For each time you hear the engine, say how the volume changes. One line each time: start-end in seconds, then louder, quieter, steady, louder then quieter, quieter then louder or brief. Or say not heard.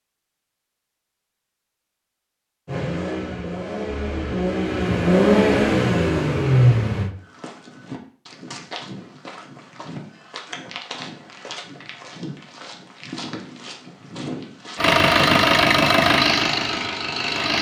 2.6-7.1 louder
14.8-17.5 brief.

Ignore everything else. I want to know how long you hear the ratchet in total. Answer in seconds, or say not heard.
not heard.